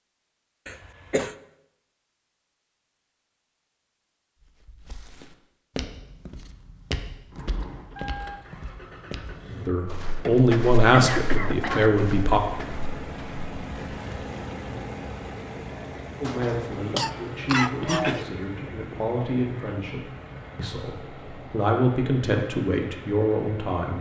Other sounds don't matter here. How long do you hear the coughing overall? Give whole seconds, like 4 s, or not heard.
4 s.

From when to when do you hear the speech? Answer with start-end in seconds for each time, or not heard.
9.7-12.4, 16.2-23.9.